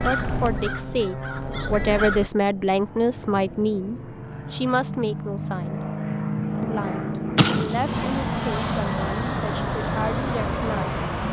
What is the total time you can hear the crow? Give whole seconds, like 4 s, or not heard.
2 s.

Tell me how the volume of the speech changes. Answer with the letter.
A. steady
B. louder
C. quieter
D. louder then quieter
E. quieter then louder
C.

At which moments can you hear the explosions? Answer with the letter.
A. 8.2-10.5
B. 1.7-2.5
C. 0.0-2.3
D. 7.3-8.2
D.